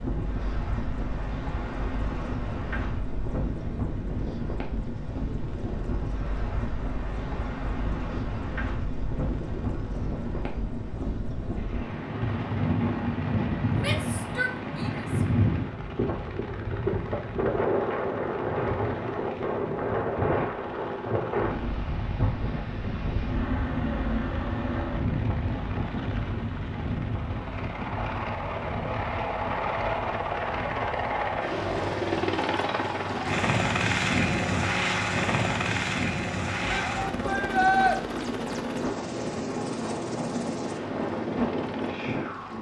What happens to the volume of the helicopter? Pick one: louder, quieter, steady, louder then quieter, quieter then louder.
louder.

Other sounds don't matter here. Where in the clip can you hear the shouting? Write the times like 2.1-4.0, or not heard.
13.8-15.2, 36.7-38.0.